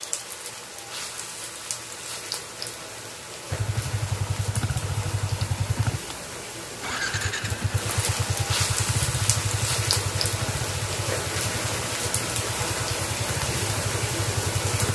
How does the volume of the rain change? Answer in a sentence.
The loudness of the rain goes up.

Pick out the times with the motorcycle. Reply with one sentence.
The motorcycle can be heard from 3.5 to 14.9 s.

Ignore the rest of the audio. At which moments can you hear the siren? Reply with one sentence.
The siren can't be heard in this clip.